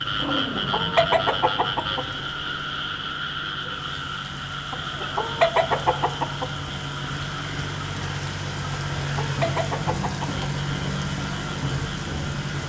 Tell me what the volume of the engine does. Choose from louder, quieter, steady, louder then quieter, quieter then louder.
louder.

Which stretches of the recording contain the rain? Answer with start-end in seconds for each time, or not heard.
0.0-12.6.